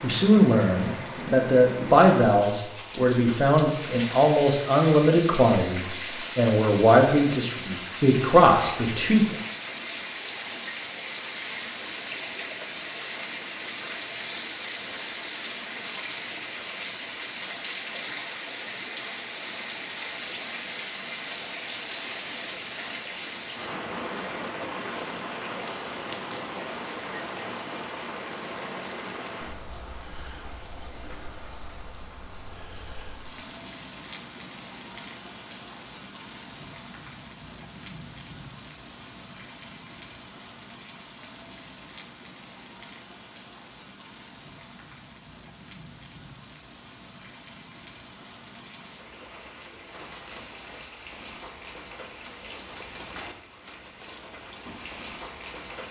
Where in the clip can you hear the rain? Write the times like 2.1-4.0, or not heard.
0.0-55.8.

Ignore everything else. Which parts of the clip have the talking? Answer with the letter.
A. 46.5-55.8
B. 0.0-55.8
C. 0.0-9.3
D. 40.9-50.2
C.